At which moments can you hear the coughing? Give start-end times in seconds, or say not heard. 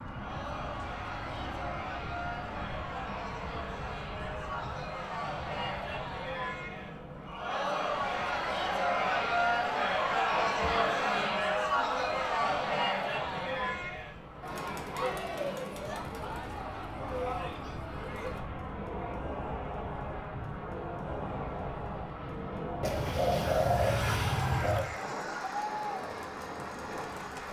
not heard.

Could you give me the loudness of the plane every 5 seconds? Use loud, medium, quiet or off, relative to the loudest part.
loud, medium, medium, loud, loud, loud.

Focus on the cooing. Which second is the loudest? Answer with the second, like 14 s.
24 s.